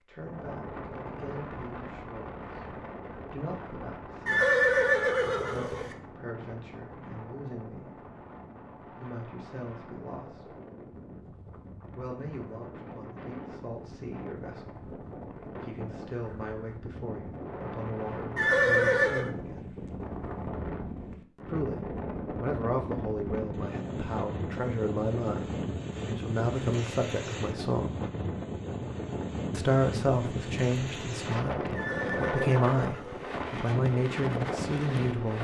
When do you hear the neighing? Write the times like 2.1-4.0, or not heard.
4.2-6.0, 18.4-19.3, 31.8-33.4.